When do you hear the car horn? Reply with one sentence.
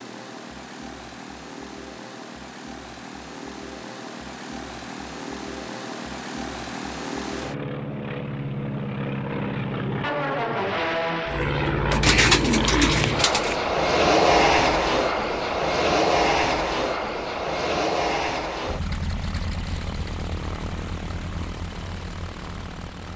The car horn can't be heard in this clip.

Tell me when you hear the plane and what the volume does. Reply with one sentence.
The plane can be heard from 0.0 to 23.1 s, getting louder then quieter.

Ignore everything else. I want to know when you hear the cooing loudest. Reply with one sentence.
The volume of the cooing peaks at 12 seconds.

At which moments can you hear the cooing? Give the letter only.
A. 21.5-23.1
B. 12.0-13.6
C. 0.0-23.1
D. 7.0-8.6
B.